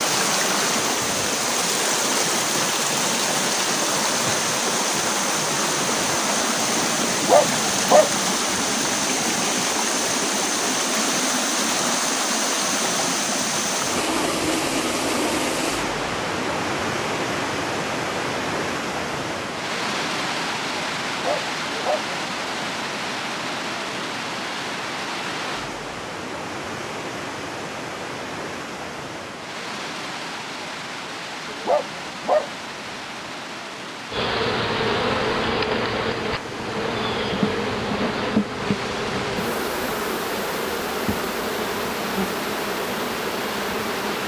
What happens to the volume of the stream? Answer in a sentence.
The loudness of the stream goes down.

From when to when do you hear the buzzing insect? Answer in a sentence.
The buzzing insect can be heard from 34.1 to 44.2 s.